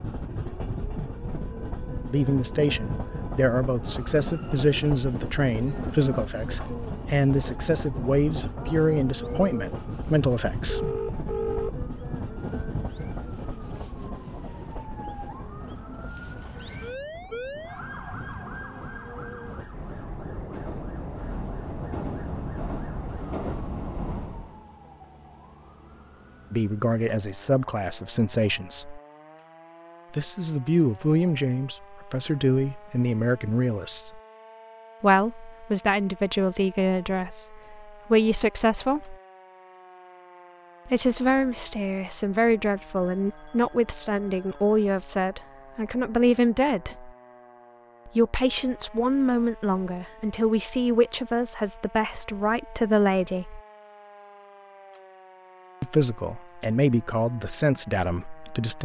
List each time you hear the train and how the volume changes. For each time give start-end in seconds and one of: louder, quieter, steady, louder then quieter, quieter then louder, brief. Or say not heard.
0.0-24.6 quieter then louder.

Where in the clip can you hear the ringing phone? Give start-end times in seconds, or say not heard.
10.7-11.8, 43.0-44.8.